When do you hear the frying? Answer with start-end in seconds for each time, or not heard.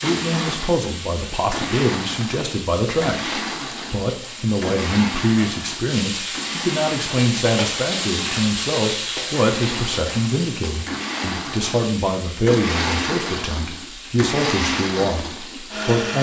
0.0-15.9.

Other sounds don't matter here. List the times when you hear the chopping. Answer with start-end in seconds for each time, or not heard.
not heard.